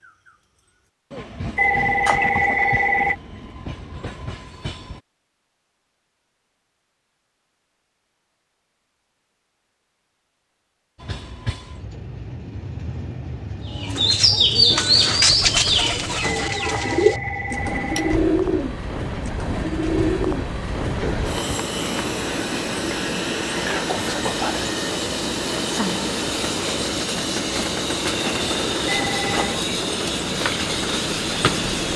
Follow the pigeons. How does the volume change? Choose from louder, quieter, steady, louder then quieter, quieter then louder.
quieter.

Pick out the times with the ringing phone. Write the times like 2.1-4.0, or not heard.
1.6-3.1, 16.2-18.2, 28.9-29.6.